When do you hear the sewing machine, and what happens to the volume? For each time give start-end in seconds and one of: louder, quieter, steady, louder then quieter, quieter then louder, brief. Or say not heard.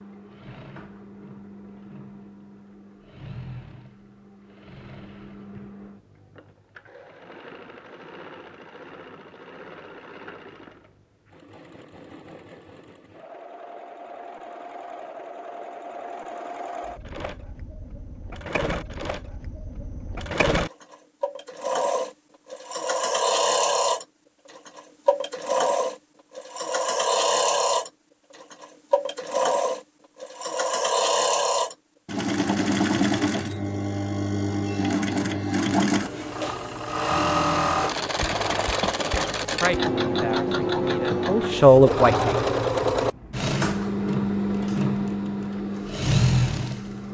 0.0-47.0 louder.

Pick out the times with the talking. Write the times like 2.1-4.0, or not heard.
39.5-42.3.